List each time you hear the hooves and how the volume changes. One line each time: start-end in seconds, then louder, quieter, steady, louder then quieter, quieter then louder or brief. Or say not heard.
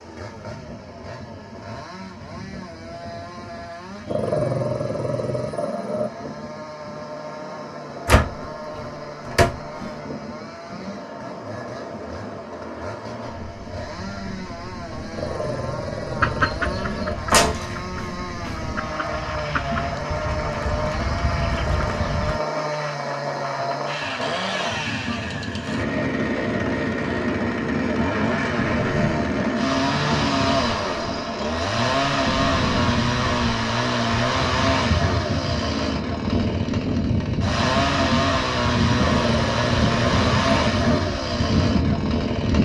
not heard.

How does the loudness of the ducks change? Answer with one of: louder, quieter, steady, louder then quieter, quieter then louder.
quieter then louder.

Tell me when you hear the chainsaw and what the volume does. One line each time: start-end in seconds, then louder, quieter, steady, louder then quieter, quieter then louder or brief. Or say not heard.
0.0-42.6 louder.